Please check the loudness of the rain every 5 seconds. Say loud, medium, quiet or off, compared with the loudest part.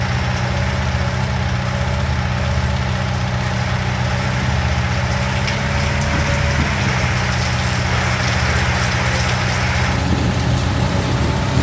medium, loud, loud.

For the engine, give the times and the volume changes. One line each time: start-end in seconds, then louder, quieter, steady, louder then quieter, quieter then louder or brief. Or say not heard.
0.0-11.5 steady.